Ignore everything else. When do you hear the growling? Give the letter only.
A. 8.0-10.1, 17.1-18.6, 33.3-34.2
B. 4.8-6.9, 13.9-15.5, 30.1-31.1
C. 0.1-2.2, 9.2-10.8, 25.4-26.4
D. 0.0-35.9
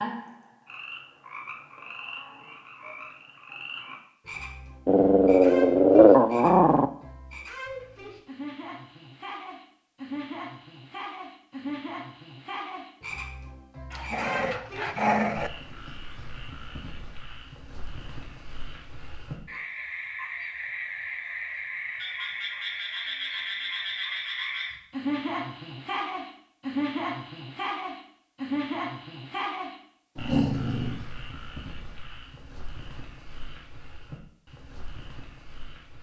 B.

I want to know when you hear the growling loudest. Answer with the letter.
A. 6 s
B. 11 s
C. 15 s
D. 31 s
A.